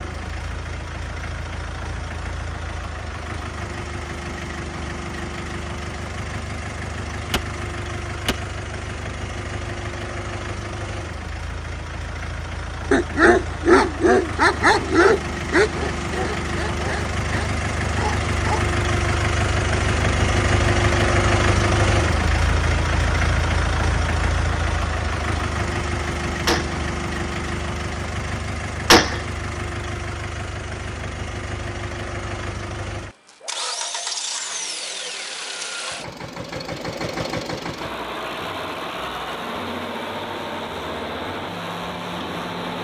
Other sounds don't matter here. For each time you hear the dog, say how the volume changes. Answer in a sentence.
You can hear the dog from 12.9 to 18.6 s, getting quieter.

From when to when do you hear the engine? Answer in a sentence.
The engine can be heard from 0.0 to 42.8 s.